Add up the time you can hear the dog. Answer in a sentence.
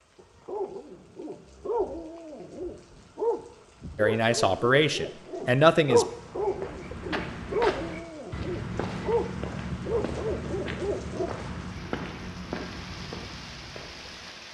You can hear the dog for 11 seconds altogether.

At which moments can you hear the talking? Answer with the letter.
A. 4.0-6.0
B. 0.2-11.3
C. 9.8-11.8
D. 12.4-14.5
A.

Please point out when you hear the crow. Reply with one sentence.
You can't hear the crow here.